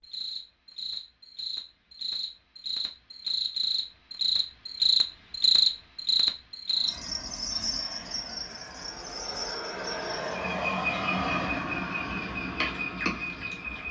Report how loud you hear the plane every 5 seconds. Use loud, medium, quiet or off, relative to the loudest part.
off, medium, loud.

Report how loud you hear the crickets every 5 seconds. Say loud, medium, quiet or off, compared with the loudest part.
loud, loud, medium.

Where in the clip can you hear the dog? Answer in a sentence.
You can't hear the dog here.